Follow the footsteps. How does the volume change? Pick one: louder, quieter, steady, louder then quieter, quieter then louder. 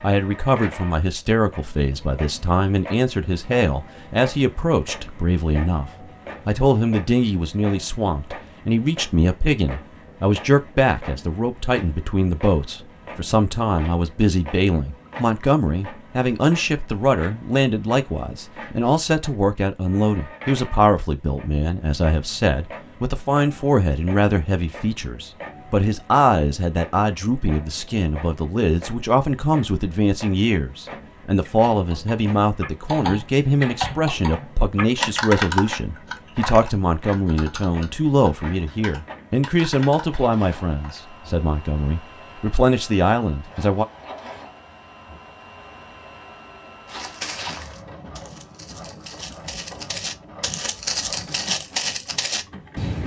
quieter then louder.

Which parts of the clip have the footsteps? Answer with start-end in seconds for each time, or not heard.
46.9-53.0.